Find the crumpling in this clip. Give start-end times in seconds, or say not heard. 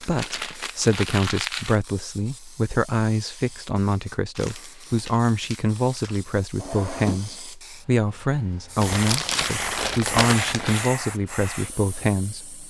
0.0-1.8, 4.3-6.2, 8.8-10.9.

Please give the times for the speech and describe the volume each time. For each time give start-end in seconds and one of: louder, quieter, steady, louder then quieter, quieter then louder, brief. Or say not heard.
0.0-12.6 steady.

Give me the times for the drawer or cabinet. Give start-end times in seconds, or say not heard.
6.5-7.4.